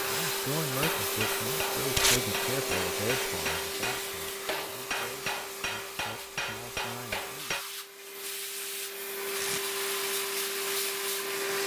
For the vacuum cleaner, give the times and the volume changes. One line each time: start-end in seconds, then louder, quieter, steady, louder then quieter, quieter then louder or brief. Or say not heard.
0.0-11.6 quieter then louder.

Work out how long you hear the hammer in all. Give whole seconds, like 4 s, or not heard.
7 s.